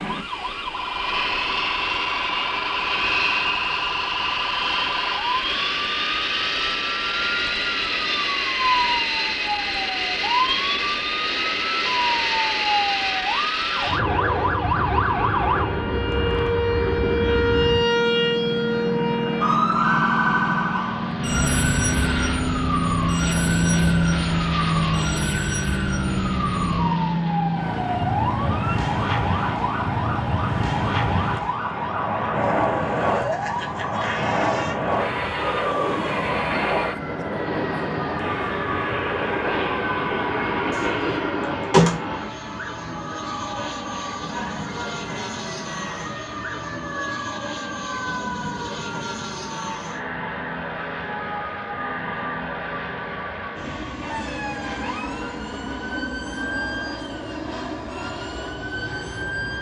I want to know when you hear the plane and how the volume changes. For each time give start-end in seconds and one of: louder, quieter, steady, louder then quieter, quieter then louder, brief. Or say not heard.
0.0-59.5 quieter.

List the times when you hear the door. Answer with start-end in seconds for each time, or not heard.
40.7-42.3.